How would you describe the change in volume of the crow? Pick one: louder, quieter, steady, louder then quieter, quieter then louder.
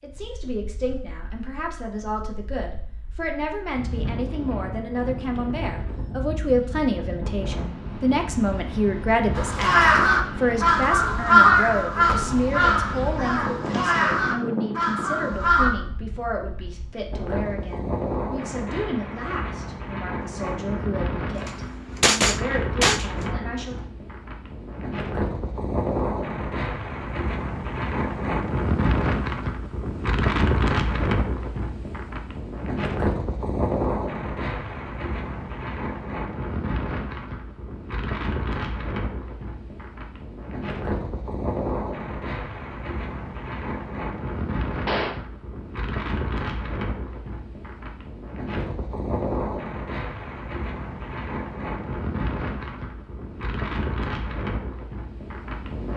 quieter.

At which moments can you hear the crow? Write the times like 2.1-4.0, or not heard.
9.3-15.7.